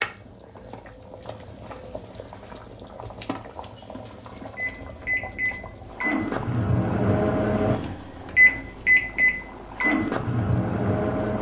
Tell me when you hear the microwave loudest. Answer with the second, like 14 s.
9 s.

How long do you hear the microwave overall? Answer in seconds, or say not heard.
7 s.